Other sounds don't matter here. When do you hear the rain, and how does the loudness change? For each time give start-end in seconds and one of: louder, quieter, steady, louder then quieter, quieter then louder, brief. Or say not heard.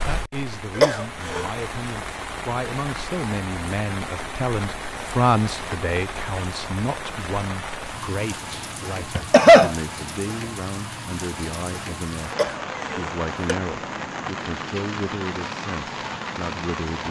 0.0-17.0 steady.